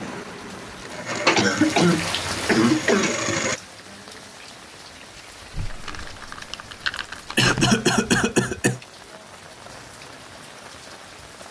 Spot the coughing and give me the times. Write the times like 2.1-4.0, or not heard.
1.4-3.2, 7.0-8.8.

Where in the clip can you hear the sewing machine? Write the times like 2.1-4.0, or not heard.
0.0-3.6.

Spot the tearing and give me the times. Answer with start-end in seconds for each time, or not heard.
5.5-7.8.